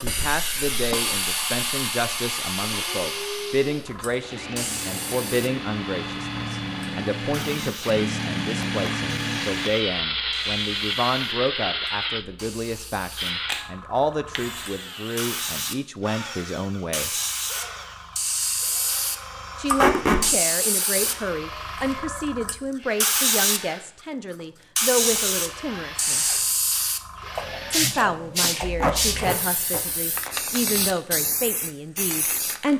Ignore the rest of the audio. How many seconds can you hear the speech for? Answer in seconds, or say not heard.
29 s.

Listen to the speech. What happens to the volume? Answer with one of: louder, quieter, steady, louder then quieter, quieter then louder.
steady.